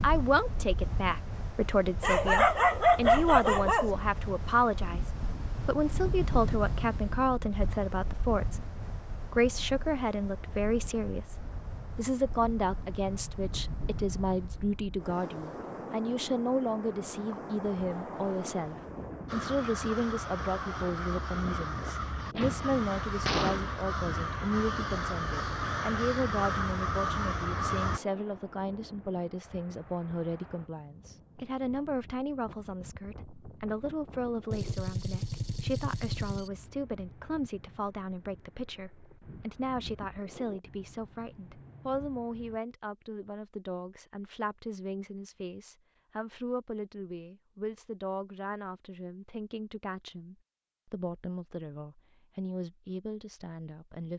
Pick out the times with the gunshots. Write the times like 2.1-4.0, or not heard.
22.1-23.8, 34.5-36.5.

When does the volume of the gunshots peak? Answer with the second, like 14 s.
23 s.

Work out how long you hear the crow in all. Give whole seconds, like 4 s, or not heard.
9 s.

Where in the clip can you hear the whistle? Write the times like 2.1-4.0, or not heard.
not heard.